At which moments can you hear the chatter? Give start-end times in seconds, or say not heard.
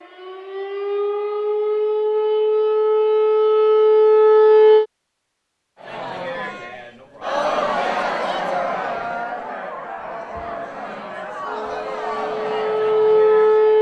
5.8-13.7.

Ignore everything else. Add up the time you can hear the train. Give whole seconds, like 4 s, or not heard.
not heard.